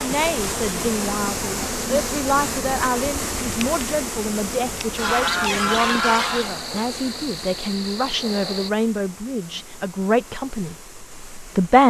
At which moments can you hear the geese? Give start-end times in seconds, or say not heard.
5.0-6.5.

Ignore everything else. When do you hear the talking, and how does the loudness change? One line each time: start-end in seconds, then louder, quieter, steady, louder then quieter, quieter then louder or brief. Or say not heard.
0.0-11.8 steady.